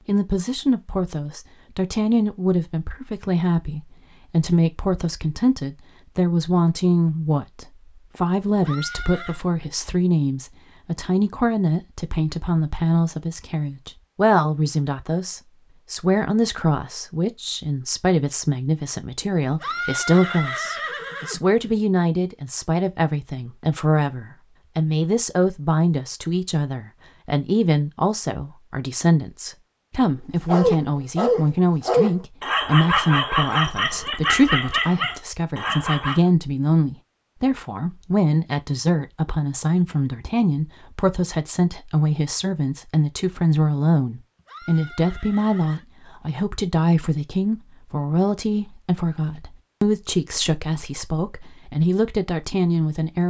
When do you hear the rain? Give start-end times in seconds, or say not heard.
not heard.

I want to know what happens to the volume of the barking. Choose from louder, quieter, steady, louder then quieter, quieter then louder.
quieter.